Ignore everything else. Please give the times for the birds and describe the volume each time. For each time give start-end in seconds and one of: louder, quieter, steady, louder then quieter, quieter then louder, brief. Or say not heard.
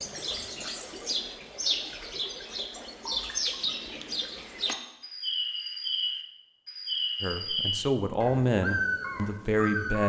0.0-10.0 steady.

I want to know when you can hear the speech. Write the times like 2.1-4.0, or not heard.
7.2-10.0.